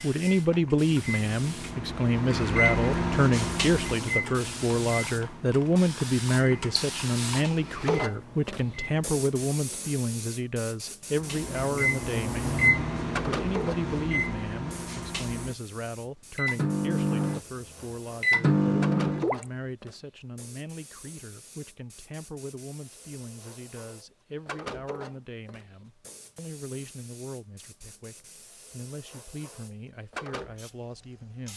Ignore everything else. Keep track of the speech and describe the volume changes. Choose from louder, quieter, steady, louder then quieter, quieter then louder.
quieter.